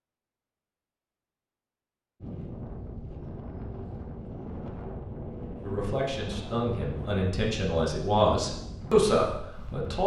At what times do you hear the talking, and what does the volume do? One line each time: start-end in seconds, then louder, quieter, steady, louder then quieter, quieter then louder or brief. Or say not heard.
5.6-10.0 louder.